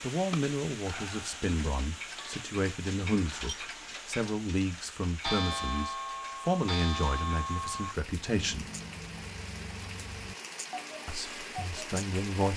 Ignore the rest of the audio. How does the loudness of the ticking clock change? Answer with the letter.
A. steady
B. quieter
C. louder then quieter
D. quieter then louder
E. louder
C.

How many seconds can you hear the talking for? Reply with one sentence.
The talking can be heard for 10 seconds in total.